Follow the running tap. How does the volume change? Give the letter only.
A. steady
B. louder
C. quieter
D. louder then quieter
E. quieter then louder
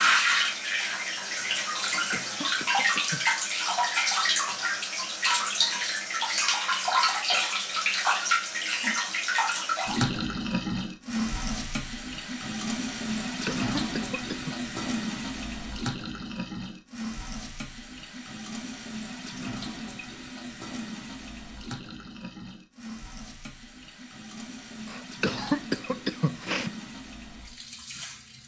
C.